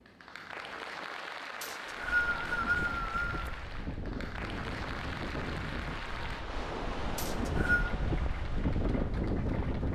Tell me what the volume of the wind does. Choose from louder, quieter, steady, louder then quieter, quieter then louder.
louder.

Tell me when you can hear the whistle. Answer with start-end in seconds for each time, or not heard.
1.6-3.5, 7.2-7.9.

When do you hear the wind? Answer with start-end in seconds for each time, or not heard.
1.9-9.9.